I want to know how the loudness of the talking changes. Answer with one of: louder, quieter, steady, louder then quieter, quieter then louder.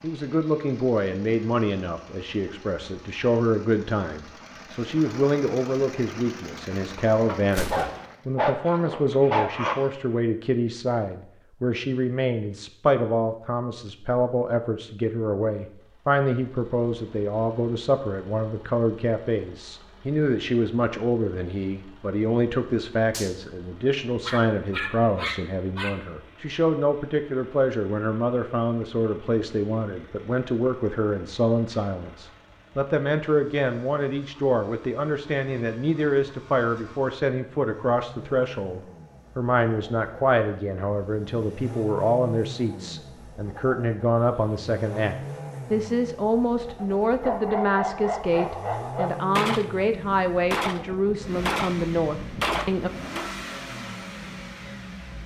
steady.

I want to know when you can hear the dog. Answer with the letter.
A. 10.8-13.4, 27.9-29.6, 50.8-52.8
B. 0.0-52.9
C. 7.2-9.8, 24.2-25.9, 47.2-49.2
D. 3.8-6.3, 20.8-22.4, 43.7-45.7
C.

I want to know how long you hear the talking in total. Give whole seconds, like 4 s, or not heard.
53 s.